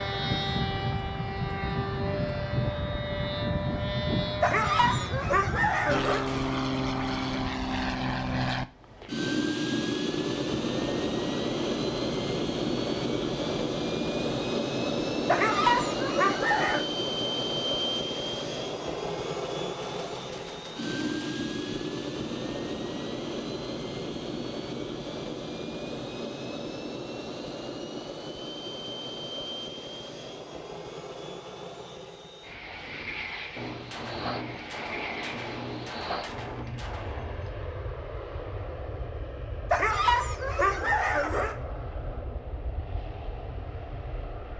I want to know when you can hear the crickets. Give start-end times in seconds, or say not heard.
not heard.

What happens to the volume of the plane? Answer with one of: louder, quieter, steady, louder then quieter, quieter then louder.
quieter.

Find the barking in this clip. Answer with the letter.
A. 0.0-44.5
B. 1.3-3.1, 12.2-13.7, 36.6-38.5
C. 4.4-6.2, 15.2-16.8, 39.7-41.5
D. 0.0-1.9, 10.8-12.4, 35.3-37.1
C.